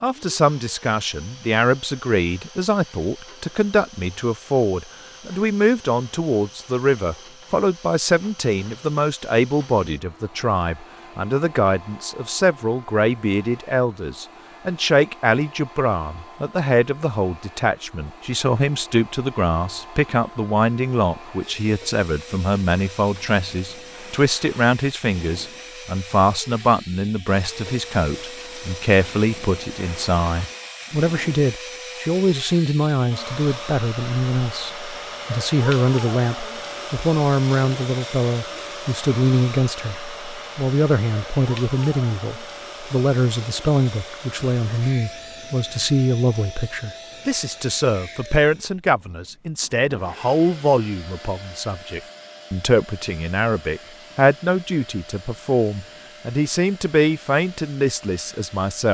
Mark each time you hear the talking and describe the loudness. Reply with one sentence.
The talking can be heard from 0.0 to 40.0 s, at a steady volume; and from 40.5 to 58.8 s, at a steady volume.